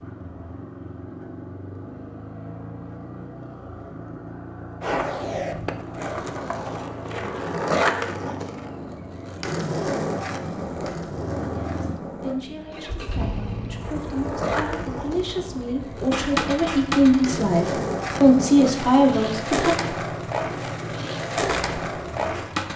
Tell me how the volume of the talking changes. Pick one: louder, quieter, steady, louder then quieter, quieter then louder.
louder.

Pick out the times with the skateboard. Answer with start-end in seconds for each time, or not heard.
4.8-22.7.